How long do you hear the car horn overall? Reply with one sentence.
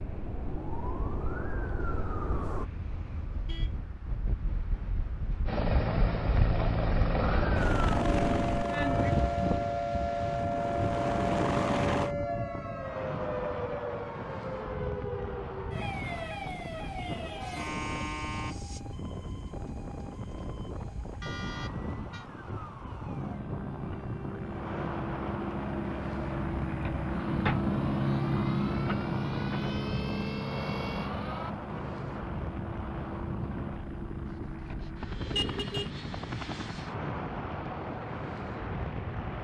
You can hear the car horn for 4 seconds altogether.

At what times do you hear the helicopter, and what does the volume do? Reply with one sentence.
You can hear the helicopter from 5.5 to 12.2 s, getting quieter then louder; and from 23.1 to 39.3 s, getting louder then quieter.